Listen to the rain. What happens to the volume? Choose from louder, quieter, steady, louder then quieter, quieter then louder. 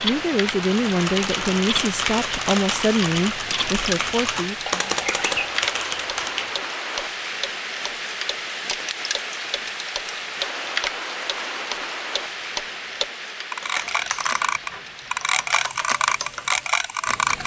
quieter.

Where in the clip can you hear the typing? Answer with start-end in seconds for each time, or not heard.
0.6-6.5, 13.6-17.4.